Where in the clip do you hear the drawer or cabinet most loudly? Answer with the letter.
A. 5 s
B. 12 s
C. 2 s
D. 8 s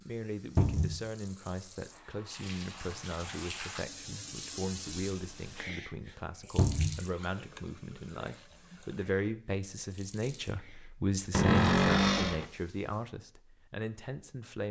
B.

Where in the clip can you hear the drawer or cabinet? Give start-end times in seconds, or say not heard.
0.6-1.0, 6.5-7.0, 11.3-12.4.